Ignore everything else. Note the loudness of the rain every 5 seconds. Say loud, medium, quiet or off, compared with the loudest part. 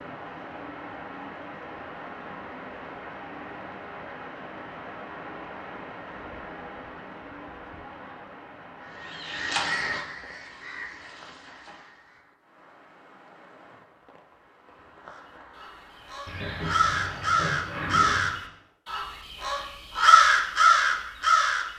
loud, loud, quiet, medium, off.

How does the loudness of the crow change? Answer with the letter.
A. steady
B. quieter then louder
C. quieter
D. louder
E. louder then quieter
B.